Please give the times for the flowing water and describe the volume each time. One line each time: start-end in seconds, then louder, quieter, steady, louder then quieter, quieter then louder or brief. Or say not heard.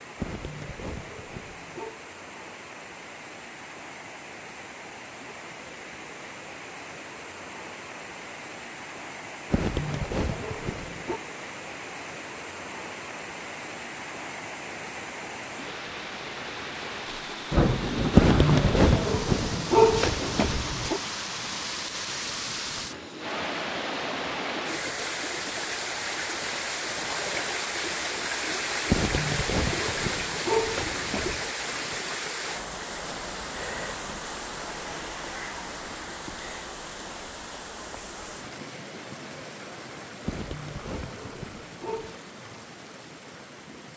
0.0-43.9 louder then quieter.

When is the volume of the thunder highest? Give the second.
18 s.